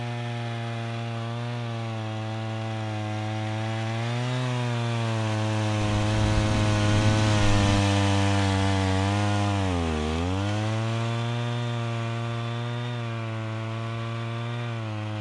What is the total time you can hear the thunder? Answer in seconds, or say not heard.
2 s.